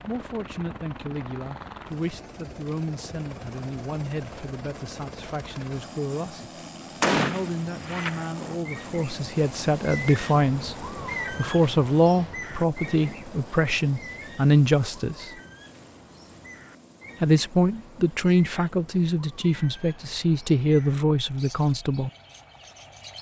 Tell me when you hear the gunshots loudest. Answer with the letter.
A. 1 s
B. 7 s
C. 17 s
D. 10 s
B.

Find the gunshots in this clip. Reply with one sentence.
You can hear the gunshots from 7.0 to 8.6 s.